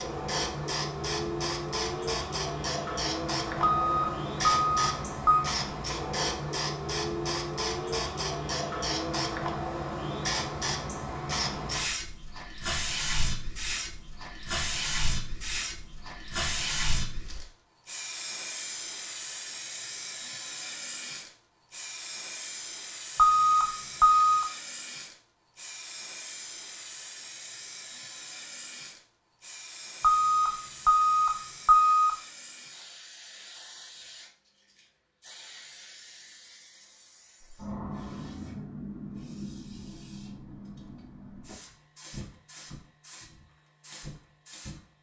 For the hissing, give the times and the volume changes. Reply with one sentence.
You can hear the hissing from 0.0 to 44.9 s, getting quieter.